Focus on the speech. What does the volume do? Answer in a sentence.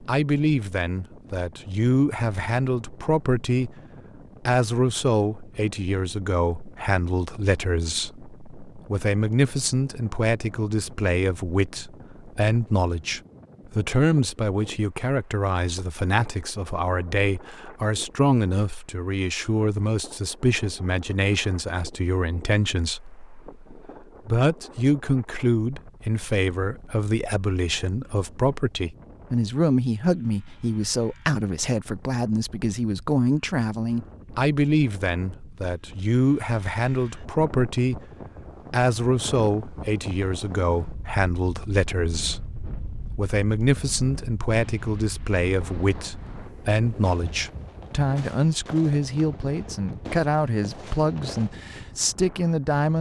The volume of the speech stays about the same.